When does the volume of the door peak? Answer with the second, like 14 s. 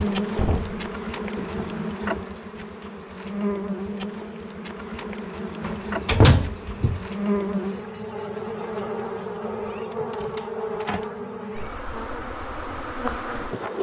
6 s.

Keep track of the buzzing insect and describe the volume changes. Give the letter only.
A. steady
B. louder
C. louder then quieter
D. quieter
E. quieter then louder
A.